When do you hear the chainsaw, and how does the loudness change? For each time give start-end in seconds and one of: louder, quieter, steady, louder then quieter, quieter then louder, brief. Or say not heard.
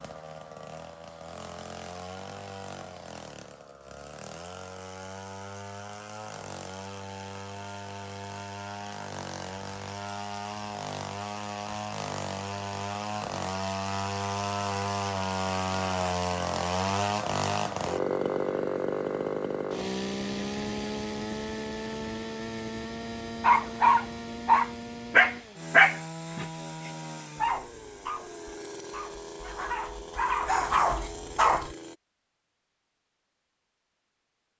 0.0-31.9 louder then quieter.